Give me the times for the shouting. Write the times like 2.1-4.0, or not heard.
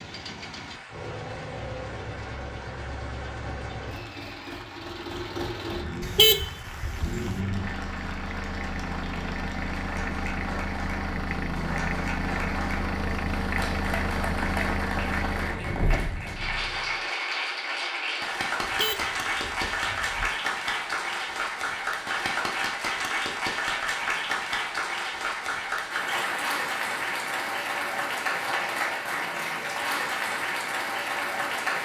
not heard.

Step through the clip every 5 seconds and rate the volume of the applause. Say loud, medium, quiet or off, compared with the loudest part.
quiet, quiet, medium, loud, loud, loud, loud.